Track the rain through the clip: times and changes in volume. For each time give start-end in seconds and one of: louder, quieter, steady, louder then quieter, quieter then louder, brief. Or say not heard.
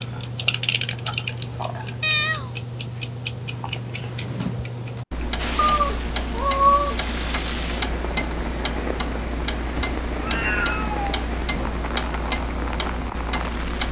5.3-13.8 steady.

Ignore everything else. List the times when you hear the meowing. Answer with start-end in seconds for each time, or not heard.
2.0-2.5, 5.5-7.0, 9.8-11.2.